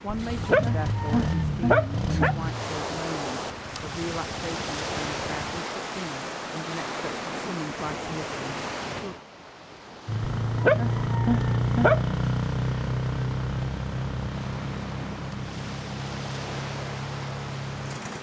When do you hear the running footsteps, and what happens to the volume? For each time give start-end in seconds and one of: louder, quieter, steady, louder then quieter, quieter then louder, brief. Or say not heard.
not heard.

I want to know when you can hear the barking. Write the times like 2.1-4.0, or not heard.
0.1-2.4, 10.4-12.2.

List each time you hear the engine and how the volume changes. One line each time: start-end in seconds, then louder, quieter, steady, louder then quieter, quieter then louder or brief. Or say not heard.
0.0-5.5 quieter
10.1-18.1 quieter.